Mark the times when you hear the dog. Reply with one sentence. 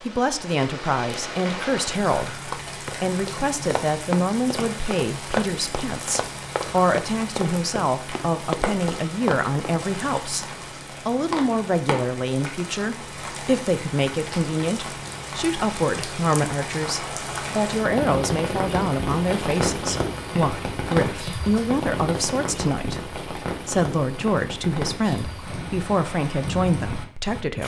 You can't hear the dog here.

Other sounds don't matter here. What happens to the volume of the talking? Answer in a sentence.
The volume of the talking stays about the same.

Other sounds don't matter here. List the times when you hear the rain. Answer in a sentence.
The rain can be heard from 0.0 to 27.6 s.